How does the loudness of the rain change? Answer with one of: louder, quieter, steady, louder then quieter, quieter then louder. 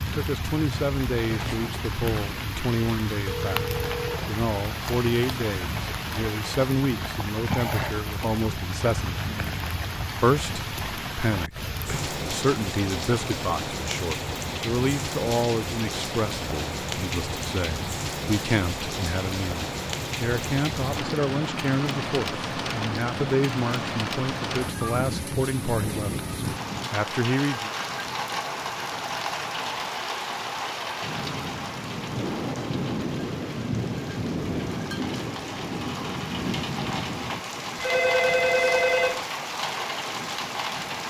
steady.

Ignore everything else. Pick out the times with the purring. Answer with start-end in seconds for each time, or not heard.
not heard.